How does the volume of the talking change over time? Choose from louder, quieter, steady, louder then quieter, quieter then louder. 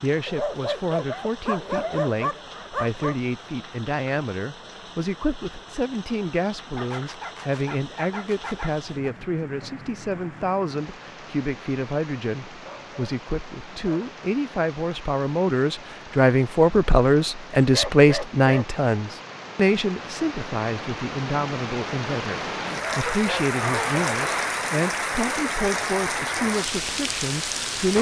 louder then quieter.